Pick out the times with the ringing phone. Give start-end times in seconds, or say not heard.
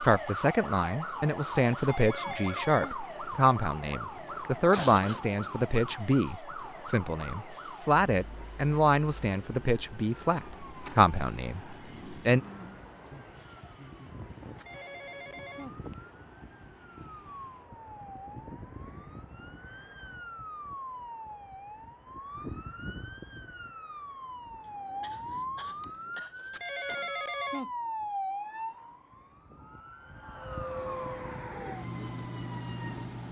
1.8-3.0, 14.6-15.8, 26.5-27.7.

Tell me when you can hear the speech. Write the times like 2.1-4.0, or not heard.
0.0-12.4.